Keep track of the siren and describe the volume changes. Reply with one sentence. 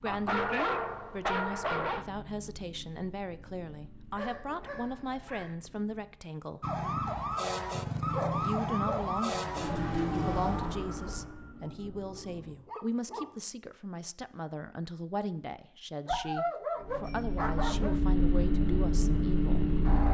The loudness of the siren goes down.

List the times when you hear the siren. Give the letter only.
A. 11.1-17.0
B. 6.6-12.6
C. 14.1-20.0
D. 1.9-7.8
B.